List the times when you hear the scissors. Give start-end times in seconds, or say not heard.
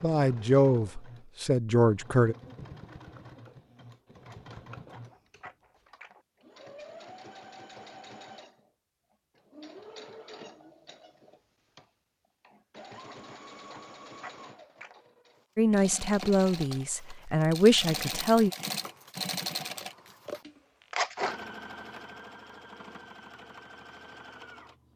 4.2-6.2, 13.0-15.0, 20.9-21.4.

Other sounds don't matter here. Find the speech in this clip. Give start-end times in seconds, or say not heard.
0.0-2.4, 15.6-18.5.